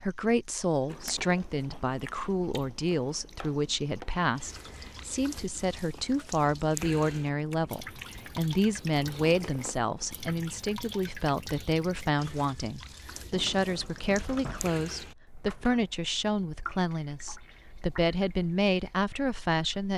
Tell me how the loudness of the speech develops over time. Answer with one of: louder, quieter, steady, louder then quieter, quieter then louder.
steady.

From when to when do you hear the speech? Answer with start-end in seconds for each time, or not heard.
0.0-19.9.